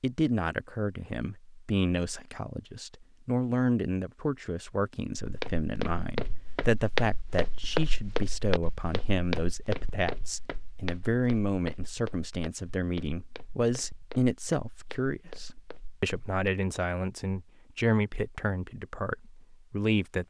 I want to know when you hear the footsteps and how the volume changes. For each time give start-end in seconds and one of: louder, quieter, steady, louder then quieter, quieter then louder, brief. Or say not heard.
5.2-16.4 quieter.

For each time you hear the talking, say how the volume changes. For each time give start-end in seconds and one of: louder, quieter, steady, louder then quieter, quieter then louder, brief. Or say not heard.
0.0-20.2 steady.